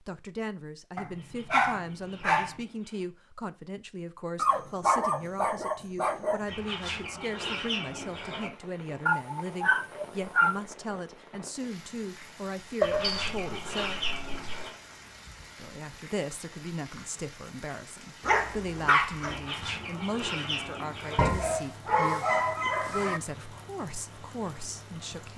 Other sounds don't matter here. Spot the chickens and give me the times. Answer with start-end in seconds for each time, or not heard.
1.1-3.1, 6.5-8.5, 12.8-14.8, 19.2-21.3.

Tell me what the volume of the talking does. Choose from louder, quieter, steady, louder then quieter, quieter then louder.
steady.